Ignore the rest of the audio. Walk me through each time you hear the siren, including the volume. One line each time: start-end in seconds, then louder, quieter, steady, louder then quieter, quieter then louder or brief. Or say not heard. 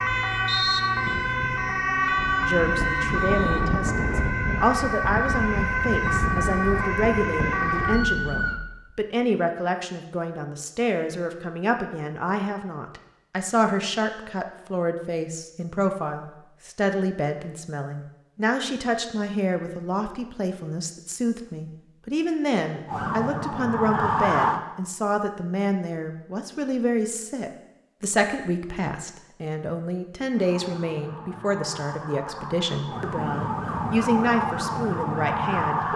0.0-8.6 steady
22.9-24.6 brief
30.3-35.9 louder.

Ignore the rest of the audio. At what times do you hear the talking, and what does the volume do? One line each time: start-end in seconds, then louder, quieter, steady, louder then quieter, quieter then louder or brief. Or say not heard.
2.4-35.9 steady.